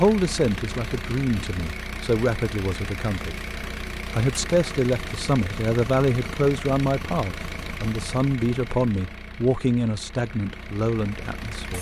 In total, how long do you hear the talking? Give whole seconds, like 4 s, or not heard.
11 s.